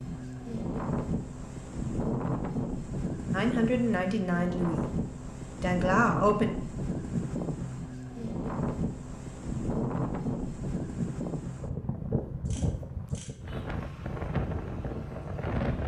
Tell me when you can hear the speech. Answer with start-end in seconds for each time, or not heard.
3.3-4.9, 5.5-6.5.